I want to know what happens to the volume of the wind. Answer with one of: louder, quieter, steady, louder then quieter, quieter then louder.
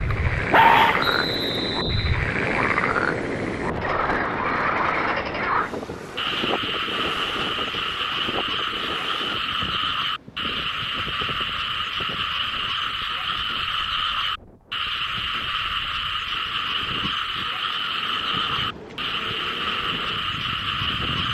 quieter then louder.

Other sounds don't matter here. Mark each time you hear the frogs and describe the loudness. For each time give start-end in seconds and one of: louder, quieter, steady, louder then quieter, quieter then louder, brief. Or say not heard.
0.0-21.2 steady.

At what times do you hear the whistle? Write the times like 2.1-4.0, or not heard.
1.0-2.2.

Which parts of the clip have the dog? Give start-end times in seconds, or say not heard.
0.1-1.1.